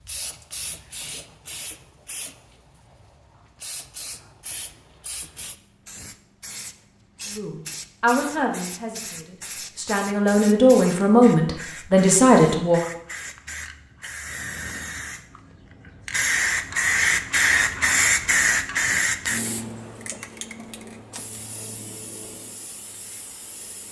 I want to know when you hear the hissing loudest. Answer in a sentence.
The loudest moment of the hissing is at 18 seconds.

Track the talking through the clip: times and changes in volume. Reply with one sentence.
The talking can be heard from 7.3 to 12.8 s, getting quieter then louder.